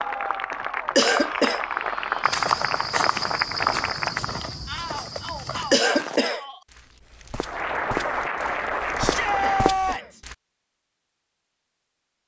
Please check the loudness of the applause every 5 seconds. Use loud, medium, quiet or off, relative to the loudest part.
loud, loud, off.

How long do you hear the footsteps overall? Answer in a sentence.
You can hear the footsteps for 8 seconds altogether.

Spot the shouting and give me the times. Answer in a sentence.
The shouting can be heard from 1.1 to 2.4 s, from 4.7 to 6.6 s and from 8.9 to 10.2 s.